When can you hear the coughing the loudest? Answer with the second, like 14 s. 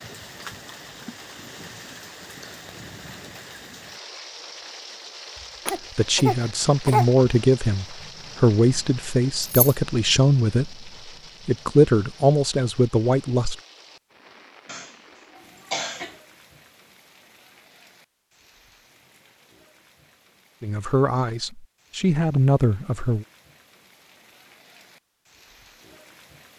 7 s.